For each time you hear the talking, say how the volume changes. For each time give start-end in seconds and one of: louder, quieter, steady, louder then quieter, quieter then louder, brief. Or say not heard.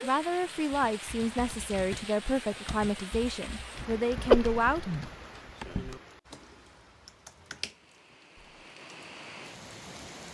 0.0-4.8 steady.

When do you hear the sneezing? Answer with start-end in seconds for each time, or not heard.
4.3-5.0.